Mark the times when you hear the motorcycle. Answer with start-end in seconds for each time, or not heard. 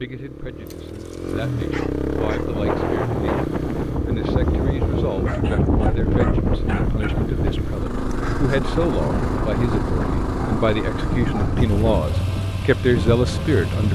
0.0-13.9.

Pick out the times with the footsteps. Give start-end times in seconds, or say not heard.
not heard.